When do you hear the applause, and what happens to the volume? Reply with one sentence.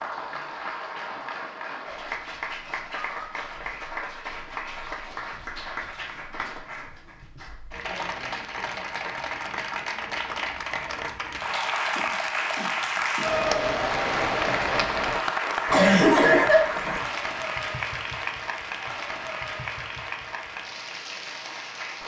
You can hear the applause from 0.0 to 22.0 s, getting louder then quieter.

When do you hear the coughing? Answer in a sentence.
You can hear the coughing from 15.7 to 17.0 s.